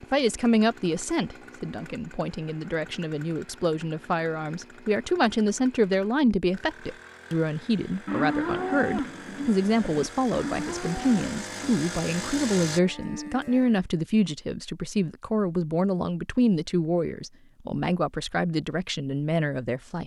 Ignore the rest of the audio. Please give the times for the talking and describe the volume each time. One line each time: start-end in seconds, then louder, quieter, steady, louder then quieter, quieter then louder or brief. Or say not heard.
0.0-20.0 steady.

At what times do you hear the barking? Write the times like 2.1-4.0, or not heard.
not heard.